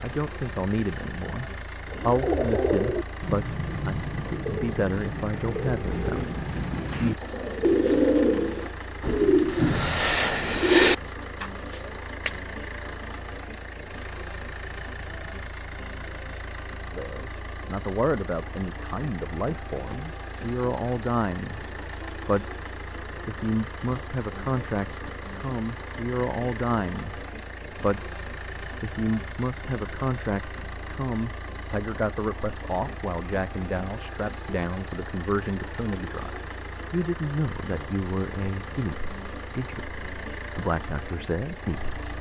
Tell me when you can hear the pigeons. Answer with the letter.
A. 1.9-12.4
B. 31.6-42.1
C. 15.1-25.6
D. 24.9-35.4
A.